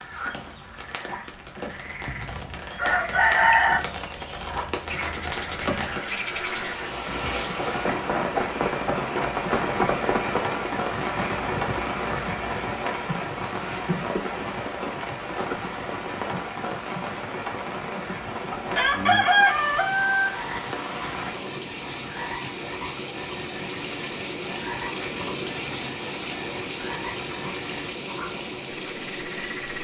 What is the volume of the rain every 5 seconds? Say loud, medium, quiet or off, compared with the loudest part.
medium, loud, loud, loud, loud, loud.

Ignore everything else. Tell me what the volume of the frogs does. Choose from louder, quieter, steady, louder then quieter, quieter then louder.
louder then quieter.